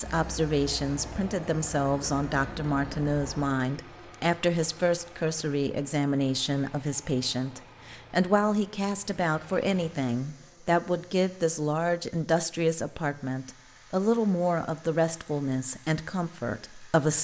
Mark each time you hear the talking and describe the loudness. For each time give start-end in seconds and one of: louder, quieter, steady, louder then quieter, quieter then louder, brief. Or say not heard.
0.0-17.1 steady.